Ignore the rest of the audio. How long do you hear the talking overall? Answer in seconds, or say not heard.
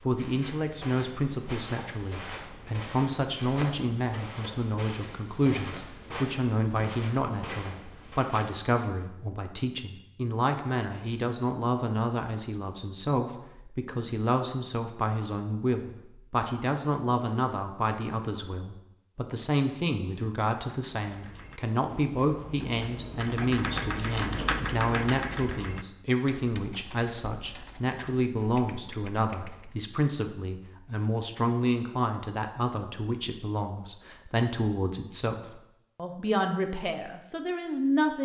38 s.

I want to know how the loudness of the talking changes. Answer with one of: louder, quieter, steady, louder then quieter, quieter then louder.
steady.